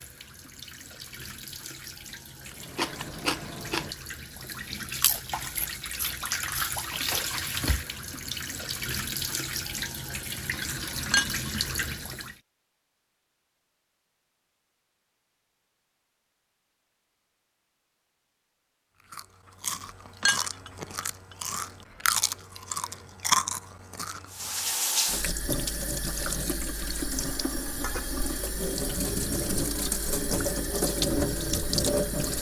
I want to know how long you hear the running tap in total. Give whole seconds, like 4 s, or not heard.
20 s.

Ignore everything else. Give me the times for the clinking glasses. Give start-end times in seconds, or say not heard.
11.1-11.9, 20.2-21.1.